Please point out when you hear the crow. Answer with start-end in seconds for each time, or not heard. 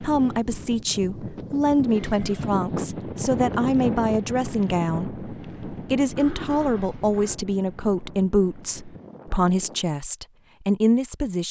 not heard.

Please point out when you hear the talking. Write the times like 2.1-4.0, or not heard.
0.0-11.4.